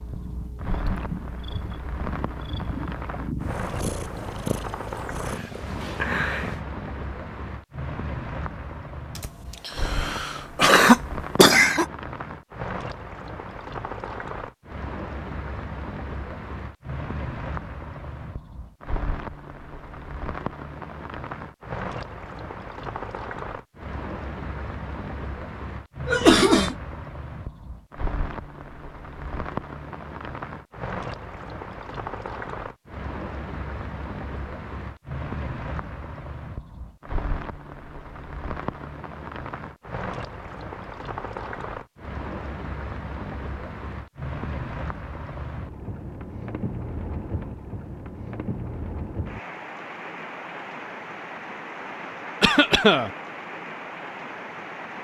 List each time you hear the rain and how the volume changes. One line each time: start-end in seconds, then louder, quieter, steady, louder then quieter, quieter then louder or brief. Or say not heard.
0.0-54.9 steady.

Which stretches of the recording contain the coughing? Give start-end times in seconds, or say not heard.
9.2-11.8, 26.1-26.8, 52.4-53.1.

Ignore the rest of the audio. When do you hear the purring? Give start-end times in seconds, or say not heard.
0.0-6.6.